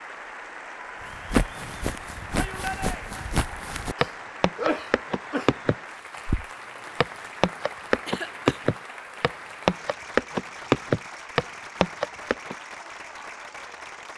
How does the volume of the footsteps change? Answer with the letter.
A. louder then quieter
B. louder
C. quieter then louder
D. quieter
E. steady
B.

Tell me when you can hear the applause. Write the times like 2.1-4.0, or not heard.
0.0-14.1.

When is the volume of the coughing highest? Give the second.
5 s.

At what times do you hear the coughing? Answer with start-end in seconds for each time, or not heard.
4.0-5.5, 8.1-8.6.